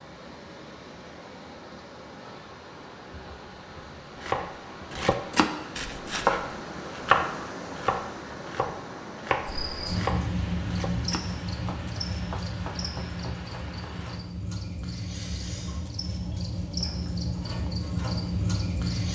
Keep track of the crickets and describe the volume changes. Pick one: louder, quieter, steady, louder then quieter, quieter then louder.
quieter then louder.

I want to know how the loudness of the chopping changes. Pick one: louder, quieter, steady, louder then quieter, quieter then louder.
quieter.